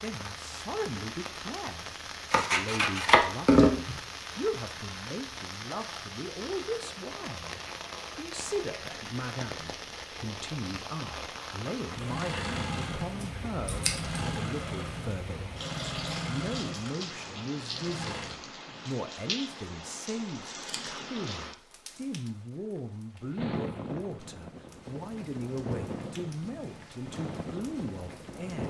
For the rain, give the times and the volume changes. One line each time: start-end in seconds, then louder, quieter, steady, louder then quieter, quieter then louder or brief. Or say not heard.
0.0-28.6 steady.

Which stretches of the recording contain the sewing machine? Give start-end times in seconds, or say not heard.
11.8-18.4.